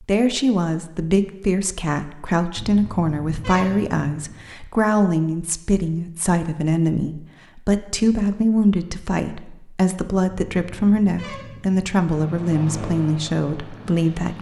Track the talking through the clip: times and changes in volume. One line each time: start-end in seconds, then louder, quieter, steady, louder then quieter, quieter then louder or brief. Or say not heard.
0.0-14.3 steady.